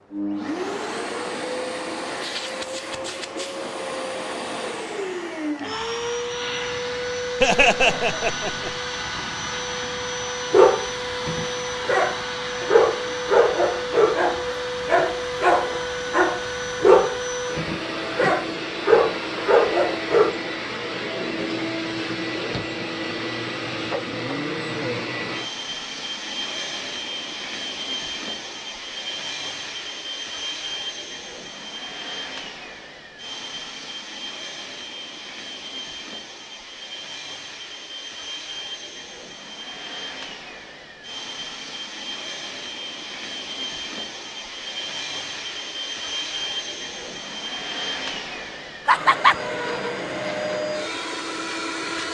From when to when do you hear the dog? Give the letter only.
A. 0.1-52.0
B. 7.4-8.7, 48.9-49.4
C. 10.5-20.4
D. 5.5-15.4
C.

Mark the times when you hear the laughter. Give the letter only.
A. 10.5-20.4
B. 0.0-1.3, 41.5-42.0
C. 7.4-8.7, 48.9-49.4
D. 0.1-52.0
C.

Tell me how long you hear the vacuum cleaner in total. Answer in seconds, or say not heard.
52 s.